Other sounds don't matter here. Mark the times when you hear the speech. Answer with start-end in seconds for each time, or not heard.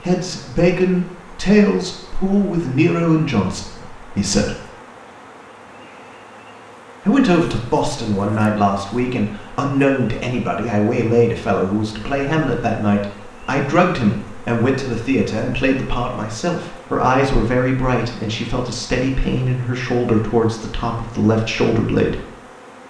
0.0-4.5, 7.0-22.2.